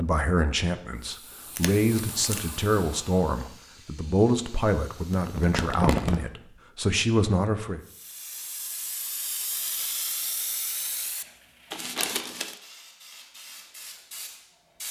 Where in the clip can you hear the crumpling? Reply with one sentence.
The crumpling can be heard from 1.6 to 2.5 s, from 5.1 to 6.2 s and from 11.7 to 12.6 s.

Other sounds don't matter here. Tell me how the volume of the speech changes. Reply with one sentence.
The loudness of the speech stays about the same.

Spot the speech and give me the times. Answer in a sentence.
You can hear the speech from 0.0 to 7.8 s.